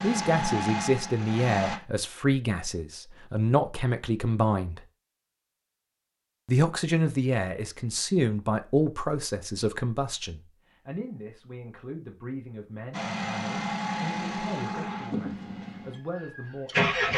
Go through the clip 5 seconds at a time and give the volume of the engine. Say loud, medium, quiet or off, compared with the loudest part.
loud, off, loud, loud.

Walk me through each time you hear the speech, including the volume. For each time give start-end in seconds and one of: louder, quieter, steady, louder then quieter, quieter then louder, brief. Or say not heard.
0.0-4.8 steady
6.5-17.1 quieter.